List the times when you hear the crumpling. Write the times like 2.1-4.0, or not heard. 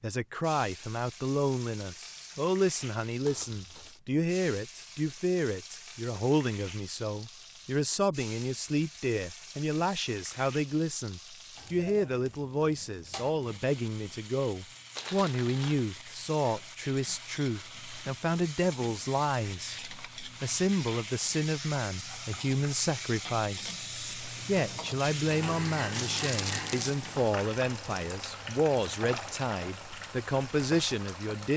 3.2-4.0, 14.9-15.8, 25.9-26.9.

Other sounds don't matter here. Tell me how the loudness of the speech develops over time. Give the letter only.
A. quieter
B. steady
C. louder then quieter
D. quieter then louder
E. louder
B.